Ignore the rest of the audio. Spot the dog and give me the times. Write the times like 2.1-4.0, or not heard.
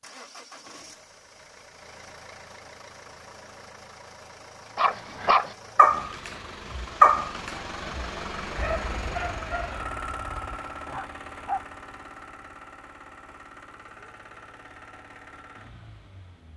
4.8-11.6.